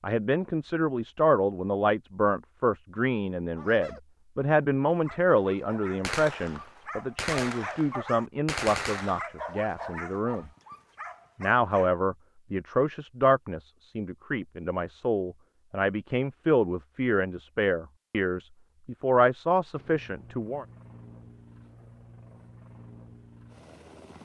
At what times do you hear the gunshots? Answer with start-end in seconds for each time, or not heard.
6.0-9.2.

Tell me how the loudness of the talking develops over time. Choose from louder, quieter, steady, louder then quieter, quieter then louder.
steady.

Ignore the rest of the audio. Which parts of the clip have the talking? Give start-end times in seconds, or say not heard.
0.0-10.5, 11.4-20.6.